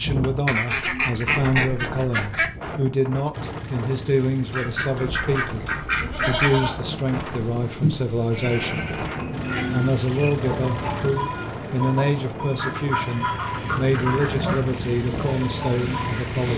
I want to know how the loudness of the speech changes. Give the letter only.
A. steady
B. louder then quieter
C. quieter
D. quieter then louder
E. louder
A.